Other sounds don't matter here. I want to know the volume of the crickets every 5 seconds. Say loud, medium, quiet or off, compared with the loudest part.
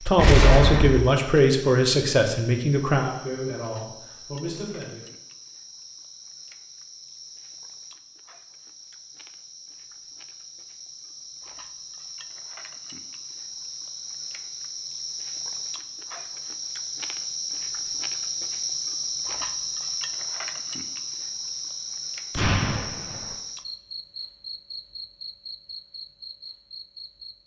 quiet, quiet, medium, loud, loud, medium.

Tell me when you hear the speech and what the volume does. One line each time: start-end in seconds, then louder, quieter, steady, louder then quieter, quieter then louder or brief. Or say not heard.
0.0-5.0 quieter.